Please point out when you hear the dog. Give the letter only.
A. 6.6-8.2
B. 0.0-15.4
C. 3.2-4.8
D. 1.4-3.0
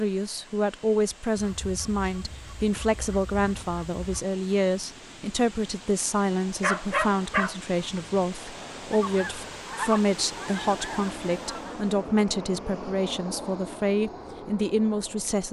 A.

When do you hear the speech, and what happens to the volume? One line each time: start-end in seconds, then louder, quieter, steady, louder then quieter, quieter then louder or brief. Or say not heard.
0.0-15.4 steady.